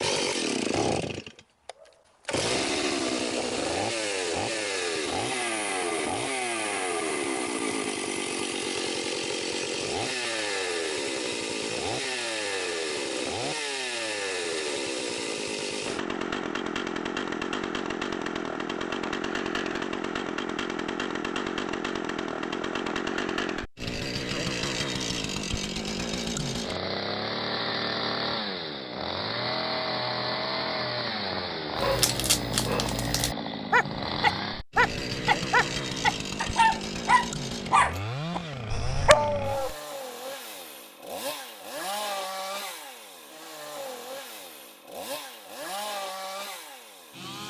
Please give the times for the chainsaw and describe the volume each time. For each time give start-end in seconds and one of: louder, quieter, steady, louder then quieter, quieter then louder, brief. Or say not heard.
0.0-47.4 quieter.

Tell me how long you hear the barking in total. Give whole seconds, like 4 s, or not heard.
8 s.